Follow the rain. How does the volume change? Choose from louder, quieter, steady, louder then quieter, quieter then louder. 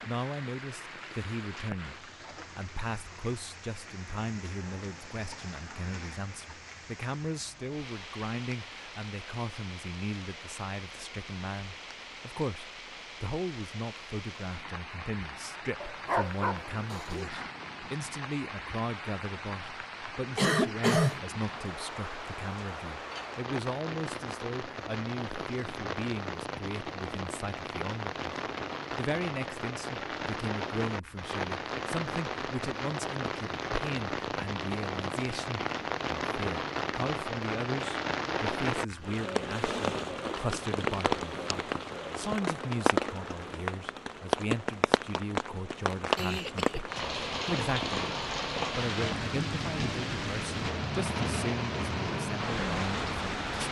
louder.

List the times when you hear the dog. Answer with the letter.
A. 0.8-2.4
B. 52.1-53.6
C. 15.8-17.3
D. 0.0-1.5
C.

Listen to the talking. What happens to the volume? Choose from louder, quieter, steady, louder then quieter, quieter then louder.
steady.